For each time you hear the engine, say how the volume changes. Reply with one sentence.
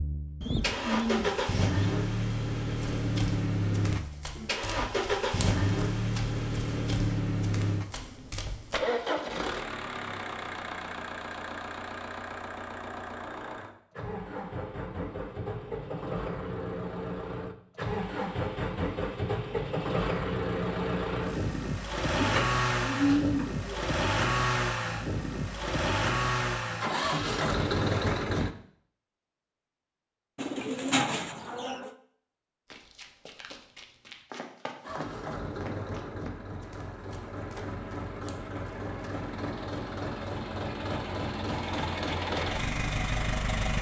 The engine can be heard from 0.0 to 28.5 s, getting quieter then louder; and from 34.8 to 43.7 s, getting louder.